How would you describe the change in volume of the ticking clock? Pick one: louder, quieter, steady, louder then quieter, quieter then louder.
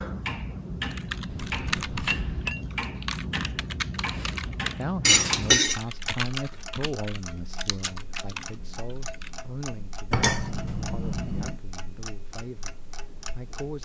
quieter.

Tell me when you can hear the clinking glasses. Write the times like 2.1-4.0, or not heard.
1.3-2.6, 5.0-5.8, 10.1-11.6.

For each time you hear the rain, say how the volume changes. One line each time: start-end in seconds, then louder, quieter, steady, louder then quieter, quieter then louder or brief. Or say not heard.
not heard.